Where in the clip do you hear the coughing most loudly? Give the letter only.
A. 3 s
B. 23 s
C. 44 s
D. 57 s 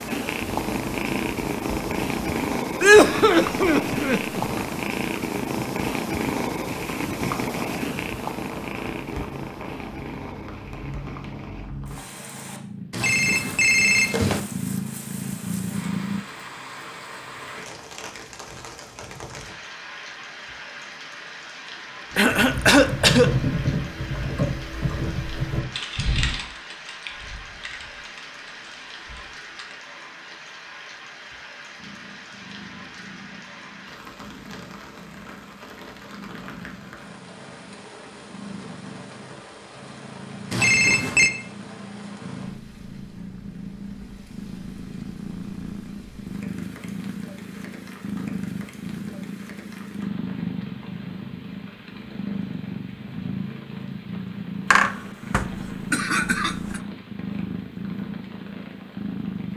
A.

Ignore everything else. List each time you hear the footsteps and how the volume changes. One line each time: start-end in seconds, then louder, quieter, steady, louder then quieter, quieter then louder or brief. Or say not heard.
not heard.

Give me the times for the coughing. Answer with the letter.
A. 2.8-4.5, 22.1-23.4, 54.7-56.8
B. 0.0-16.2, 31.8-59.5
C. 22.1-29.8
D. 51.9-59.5
A.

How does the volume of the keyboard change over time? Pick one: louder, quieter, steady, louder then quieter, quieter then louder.
quieter.